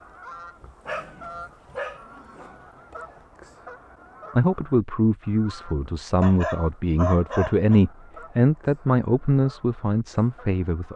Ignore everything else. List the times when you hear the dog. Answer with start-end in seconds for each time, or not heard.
0.8-2.5, 6.2-7.8.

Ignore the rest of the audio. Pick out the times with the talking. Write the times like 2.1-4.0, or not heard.
4.3-10.9.